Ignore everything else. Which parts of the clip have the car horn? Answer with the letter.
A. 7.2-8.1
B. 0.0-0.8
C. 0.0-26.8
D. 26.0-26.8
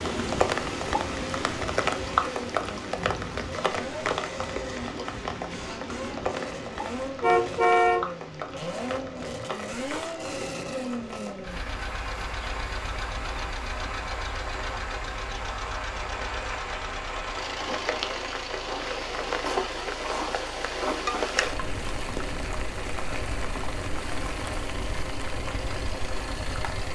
A.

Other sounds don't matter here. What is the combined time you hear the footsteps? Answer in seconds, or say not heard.
not heard.